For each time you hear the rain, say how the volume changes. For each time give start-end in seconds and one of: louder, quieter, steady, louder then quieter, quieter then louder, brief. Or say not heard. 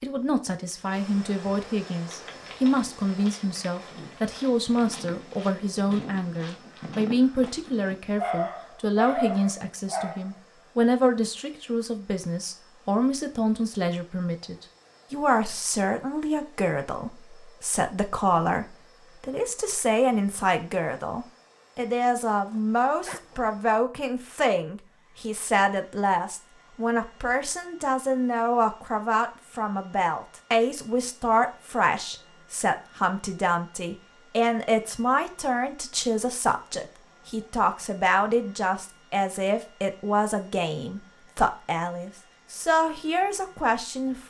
not heard.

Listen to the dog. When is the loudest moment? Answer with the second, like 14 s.
9 s.